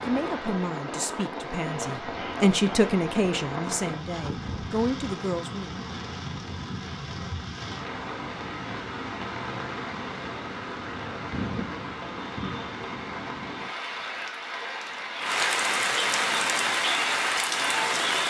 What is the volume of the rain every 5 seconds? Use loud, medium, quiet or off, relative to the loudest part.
medium, medium, medium, loud.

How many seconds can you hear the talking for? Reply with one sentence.
You can hear the talking for 6 seconds altogether.